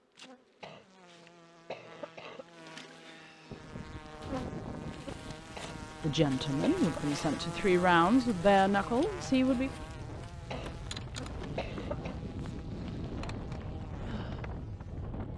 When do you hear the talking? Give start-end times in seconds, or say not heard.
6.0-9.7.